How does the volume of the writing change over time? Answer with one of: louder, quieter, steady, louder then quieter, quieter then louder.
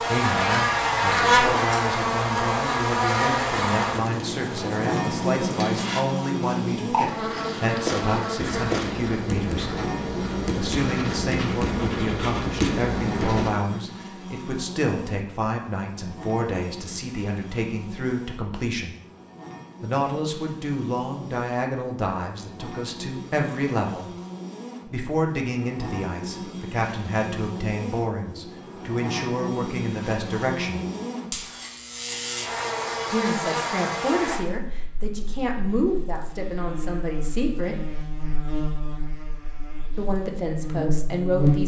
louder.